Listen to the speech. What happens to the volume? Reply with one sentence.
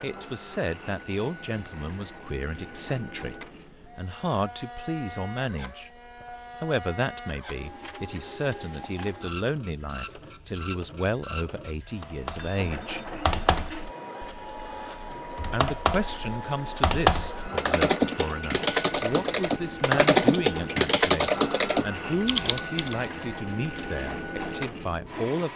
The volume of the speech stays about the same.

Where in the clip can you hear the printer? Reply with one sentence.
The printer can be heard from 0.0 to 25.5 s.